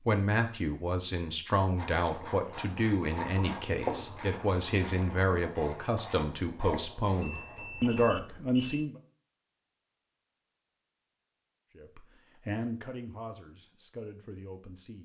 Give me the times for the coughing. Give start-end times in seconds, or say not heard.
not heard.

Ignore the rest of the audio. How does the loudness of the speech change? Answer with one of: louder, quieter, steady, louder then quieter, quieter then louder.
quieter.